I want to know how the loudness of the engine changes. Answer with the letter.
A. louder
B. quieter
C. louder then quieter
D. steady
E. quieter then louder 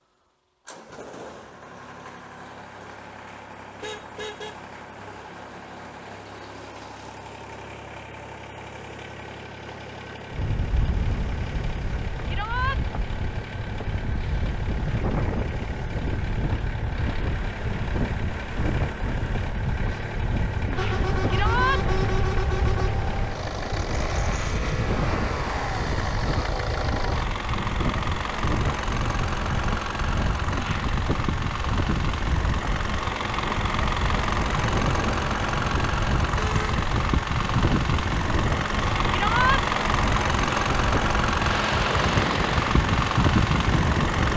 A.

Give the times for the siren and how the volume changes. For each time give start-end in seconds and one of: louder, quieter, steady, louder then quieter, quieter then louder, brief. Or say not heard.
not heard.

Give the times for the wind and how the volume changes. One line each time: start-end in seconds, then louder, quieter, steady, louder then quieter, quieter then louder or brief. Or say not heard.
10.3-44.3 steady.